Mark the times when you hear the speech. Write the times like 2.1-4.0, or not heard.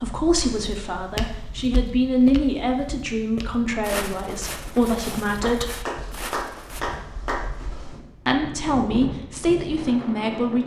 0.0-5.8, 8.2-10.6.